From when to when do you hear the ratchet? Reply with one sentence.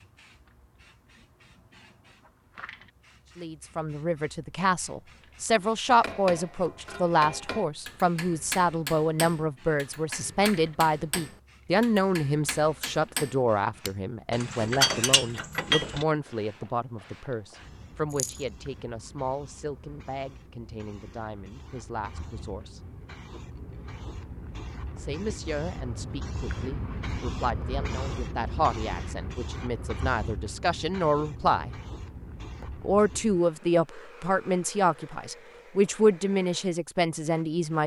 You can hear the ratchet from 14.3 to 16.1 s.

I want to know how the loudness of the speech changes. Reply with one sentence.
The loudness of the speech goes down, then up.